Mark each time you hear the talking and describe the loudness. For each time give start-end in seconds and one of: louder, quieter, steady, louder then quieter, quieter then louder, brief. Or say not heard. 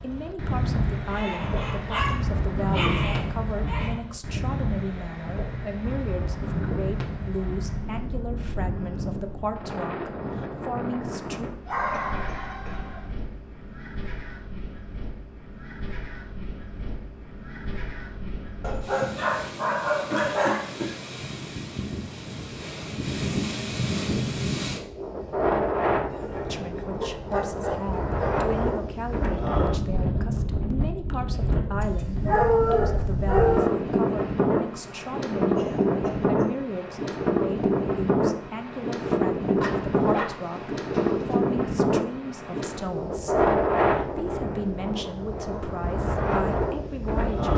0.0-11.5 steady
26.4-47.5 steady.